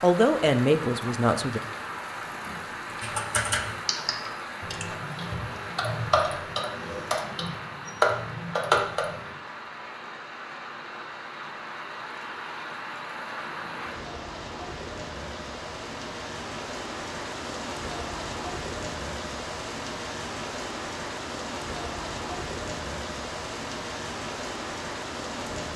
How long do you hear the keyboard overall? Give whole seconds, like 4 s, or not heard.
6 s.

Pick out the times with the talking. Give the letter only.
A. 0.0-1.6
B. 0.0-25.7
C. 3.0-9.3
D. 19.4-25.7
A.